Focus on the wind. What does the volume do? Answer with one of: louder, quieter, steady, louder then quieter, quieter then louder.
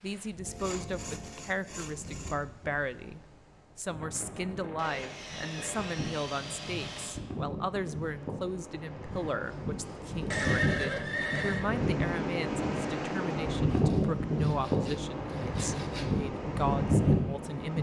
louder.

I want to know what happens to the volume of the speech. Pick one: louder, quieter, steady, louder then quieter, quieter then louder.
steady.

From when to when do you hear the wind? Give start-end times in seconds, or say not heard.
0.0-17.7.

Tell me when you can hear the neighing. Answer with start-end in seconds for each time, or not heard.
10.3-11.7.